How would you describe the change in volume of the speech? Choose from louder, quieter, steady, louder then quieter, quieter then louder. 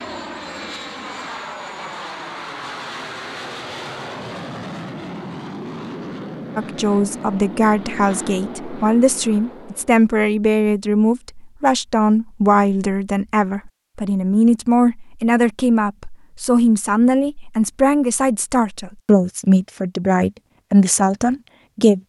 steady.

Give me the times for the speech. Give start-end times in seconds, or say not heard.
6.5-22.0.